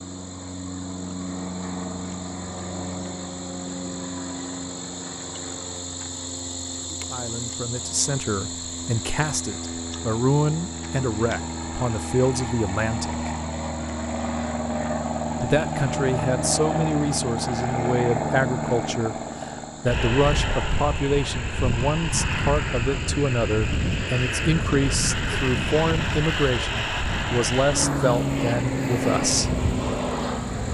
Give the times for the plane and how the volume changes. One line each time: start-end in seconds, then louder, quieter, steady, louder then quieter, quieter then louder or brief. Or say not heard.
0.0-30.6 louder.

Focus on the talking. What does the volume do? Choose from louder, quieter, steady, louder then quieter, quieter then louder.
steady.